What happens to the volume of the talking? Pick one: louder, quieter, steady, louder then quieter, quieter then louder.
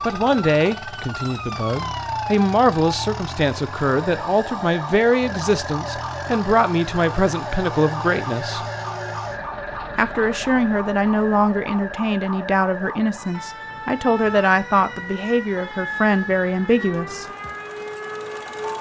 steady.